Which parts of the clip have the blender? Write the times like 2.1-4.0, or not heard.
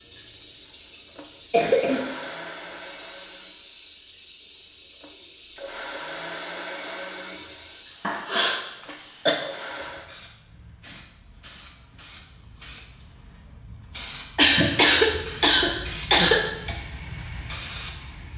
0.0-10.2, 16.6-18.3.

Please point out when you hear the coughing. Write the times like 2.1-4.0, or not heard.
1.5-2.1, 8.1-9.3, 14.3-16.8.